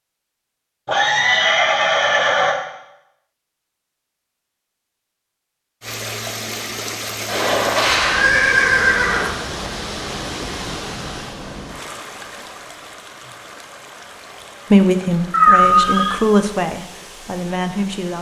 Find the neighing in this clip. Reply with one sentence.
You can hear the neighing from 0.8 to 2.5 s, from 7.2 to 9.3 s and from 15.3 to 16.1 s.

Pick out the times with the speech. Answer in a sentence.
The speech can be heard from 14.7 to 18.1 s.